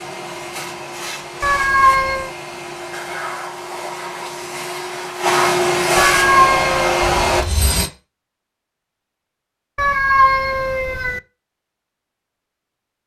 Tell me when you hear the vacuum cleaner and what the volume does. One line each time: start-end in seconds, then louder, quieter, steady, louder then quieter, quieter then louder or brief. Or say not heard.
0.0-7.5 louder.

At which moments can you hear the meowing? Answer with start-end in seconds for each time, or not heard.
1.4-2.3, 6.0-7.0, 9.8-11.2.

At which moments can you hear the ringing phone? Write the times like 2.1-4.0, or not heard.
7.0-7.9.